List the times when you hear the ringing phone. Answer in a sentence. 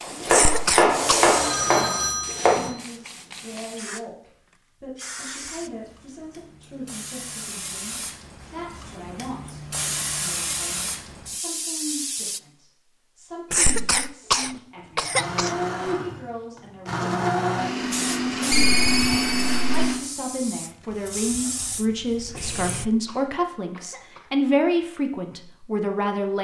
The ringing phone can be heard from 0.8 to 2.8 s and from 18.5 to 19.7 s.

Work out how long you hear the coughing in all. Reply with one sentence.
The coughing can be heard for 5 seconds in total.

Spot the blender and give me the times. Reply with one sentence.
The blender can be heard from 14.4 to 20.0 s.